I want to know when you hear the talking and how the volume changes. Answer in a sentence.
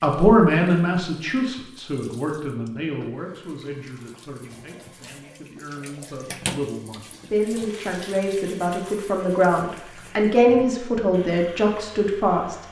You can hear the talking from 0.0 to 12.6 s, getting quieter then louder.